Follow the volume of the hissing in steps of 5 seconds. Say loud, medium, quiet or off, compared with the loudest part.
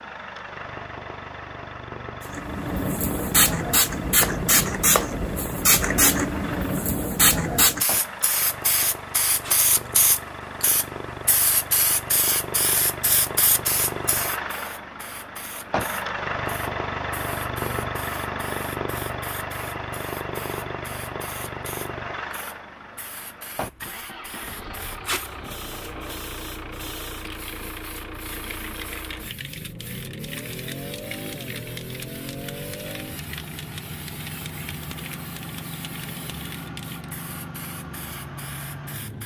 loud, loud, medium, quiet, quiet, quiet, quiet, quiet.